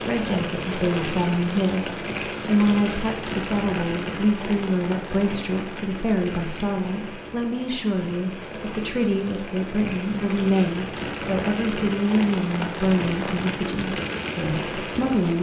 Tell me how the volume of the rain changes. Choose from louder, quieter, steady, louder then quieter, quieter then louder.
quieter then louder.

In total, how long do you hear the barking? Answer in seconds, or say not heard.
not heard.